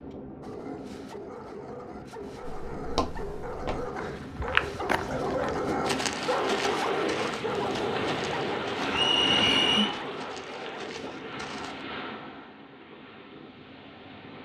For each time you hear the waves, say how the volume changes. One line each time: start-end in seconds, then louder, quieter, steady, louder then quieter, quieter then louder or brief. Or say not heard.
0.0-14.4 louder then quieter.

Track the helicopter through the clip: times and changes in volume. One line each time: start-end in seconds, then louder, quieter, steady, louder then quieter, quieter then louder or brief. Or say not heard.
not heard.